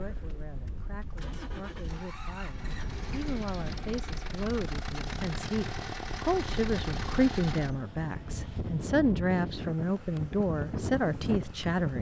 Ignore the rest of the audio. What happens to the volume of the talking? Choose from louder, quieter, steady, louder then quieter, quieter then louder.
louder.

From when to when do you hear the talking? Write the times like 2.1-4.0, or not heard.
0.0-11.9.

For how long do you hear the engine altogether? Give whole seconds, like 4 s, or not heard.
8 s.